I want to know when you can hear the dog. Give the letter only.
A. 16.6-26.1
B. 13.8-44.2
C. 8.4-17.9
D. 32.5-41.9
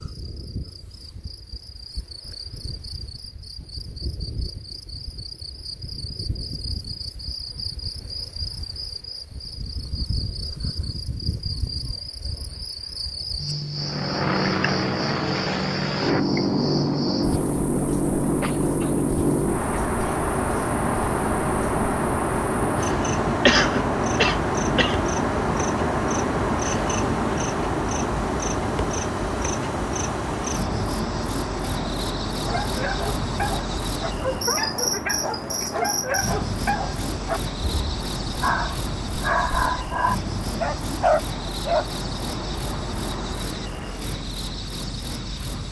D.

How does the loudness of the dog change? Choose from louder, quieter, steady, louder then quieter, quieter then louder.
louder.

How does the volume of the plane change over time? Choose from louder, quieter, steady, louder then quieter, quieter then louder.
quieter.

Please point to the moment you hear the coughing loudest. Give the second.
24 s.